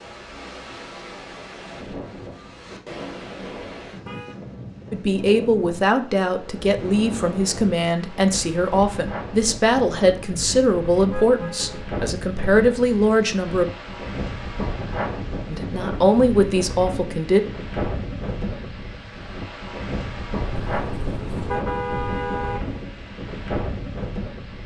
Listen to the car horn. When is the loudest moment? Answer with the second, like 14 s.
22 s.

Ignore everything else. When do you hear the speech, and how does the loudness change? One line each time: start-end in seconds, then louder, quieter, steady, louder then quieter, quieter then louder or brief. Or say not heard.
4.9-13.7 steady
15.5-17.4 brief.